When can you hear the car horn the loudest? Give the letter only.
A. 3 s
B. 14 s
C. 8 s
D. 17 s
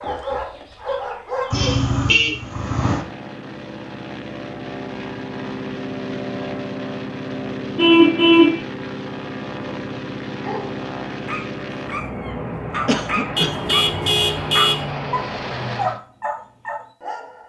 C.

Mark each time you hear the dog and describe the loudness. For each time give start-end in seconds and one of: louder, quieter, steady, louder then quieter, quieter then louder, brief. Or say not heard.
0.0-1.8 brief
10.3-17.4 louder.